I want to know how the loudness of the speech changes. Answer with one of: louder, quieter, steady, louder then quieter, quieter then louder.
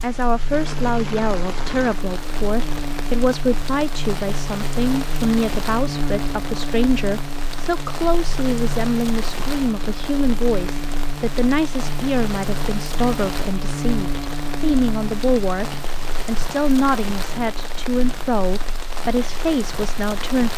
steady.